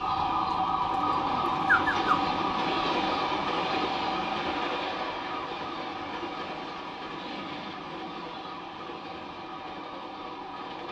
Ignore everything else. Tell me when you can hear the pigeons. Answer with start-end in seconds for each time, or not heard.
0.9-2.1.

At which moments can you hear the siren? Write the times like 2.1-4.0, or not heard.
0.0-10.8.